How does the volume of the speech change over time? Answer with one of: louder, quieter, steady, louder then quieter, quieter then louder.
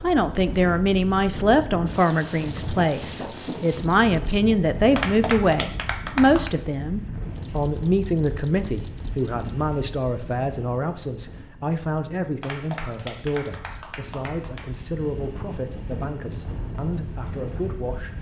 quieter.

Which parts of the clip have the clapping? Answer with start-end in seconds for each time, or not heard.
5.0-6.5, 12.4-14.8.